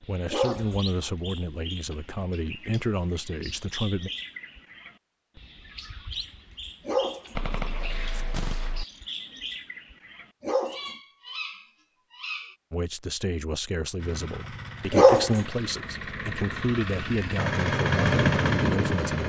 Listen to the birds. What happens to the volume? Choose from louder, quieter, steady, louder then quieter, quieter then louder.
steady.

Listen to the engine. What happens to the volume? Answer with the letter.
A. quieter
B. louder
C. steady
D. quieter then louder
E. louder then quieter
B.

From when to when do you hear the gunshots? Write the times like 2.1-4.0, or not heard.
7.3-8.8.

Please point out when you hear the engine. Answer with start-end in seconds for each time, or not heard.
13.9-19.2.